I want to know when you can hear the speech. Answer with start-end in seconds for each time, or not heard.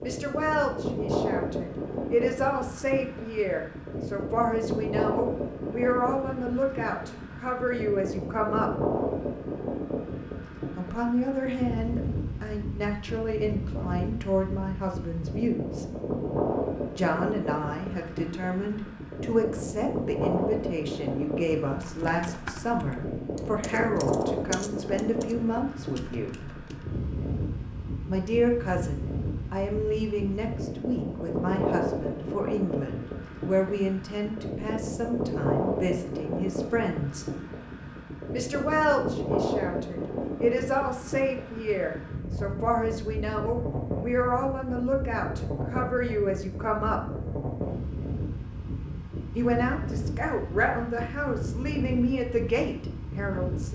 0.0-8.7, 10.8-15.9, 16.9-26.4, 28.1-37.2, 38.3-47.0, 49.4-53.7.